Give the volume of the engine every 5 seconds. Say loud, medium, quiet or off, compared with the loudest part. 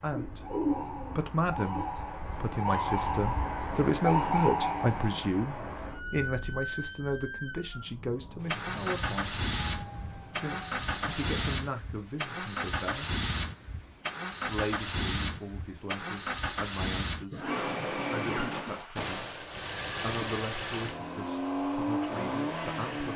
off, loud, loud, loud, loud.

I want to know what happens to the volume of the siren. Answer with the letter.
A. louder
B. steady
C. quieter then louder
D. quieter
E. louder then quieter
E.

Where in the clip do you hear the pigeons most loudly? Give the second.
1 s.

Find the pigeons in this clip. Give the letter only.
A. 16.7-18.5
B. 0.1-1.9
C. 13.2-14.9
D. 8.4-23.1
B.